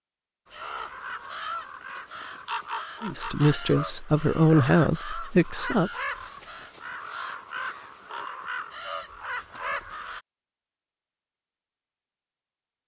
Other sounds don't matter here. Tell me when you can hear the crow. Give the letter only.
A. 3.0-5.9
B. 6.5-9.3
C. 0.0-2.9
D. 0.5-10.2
D.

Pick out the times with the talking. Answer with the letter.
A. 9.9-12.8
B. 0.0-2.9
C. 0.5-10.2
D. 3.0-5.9
D.